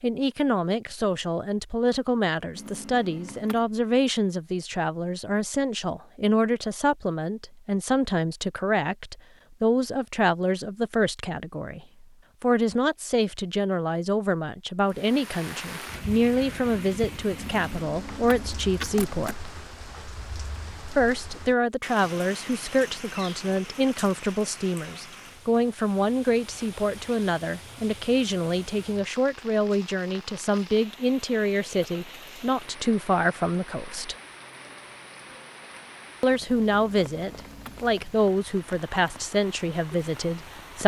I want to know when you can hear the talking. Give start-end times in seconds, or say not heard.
0.0-19.5, 20.9-34.1, 36.2-40.8.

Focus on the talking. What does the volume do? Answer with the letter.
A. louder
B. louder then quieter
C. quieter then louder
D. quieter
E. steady
E.